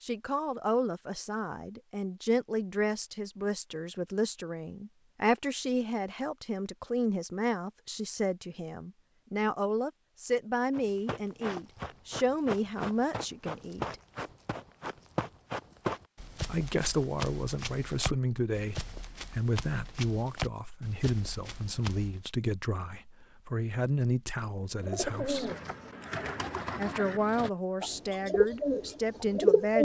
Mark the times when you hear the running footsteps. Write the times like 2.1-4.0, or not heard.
10.7-22.3.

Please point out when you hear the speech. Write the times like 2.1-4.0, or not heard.
0.0-13.9, 16.4-25.5, 26.8-29.7.